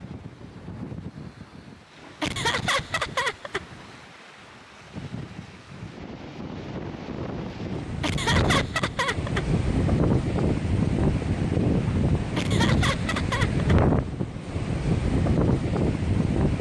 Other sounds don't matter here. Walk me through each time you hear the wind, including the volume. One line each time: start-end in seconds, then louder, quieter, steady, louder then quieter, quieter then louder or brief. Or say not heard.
0.0-16.5 louder.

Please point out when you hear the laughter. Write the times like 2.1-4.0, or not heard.
2.2-3.6, 8.0-9.4, 12.3-13.8.